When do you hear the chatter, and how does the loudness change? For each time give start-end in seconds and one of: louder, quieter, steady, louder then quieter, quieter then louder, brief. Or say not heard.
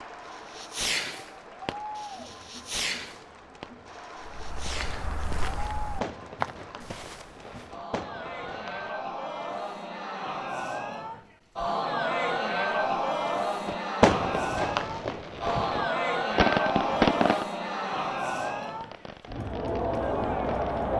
0.0-20.9 louder.